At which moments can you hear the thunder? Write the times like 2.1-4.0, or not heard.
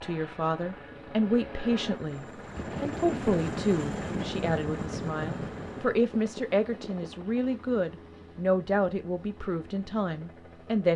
2.5-6.0.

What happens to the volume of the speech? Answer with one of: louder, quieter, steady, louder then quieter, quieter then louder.
steady.